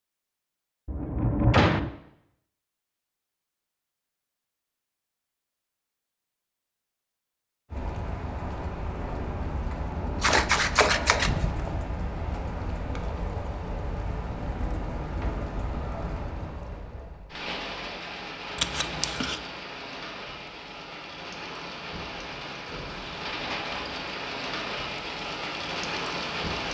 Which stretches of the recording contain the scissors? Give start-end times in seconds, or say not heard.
10.2-11.4, 18.6-19.4.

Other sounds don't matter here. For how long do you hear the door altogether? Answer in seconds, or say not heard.
3 s.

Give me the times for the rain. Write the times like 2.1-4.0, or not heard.
7.7-26.6.